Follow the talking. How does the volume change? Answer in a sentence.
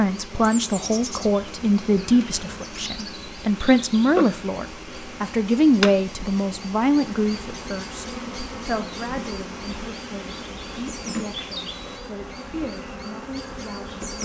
The volume of the talking goes down.